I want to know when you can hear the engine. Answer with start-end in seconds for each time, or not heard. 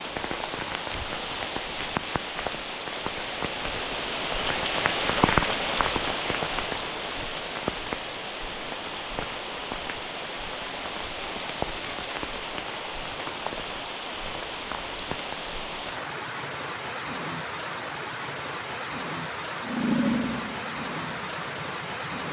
19.6-22.2.